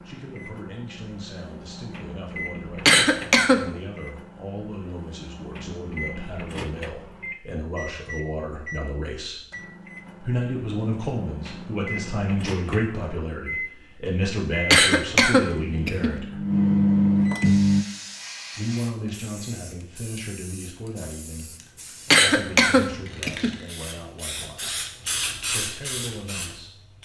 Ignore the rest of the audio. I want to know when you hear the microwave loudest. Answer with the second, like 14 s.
17 s.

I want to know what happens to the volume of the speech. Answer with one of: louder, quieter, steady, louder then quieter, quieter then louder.
louder then quieter.